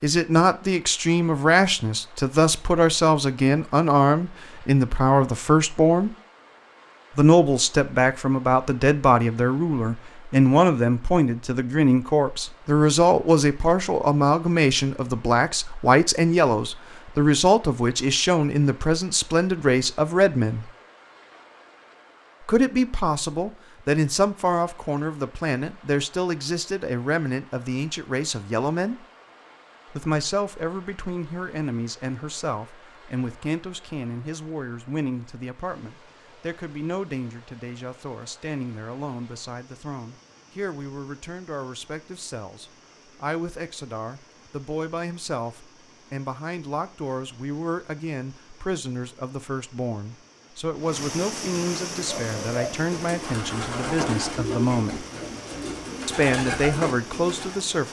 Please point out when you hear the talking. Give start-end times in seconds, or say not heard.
0.0-6.2, 7.2-20.7, 22.4-29.1, 29.9-55.0, 56.0-57.8.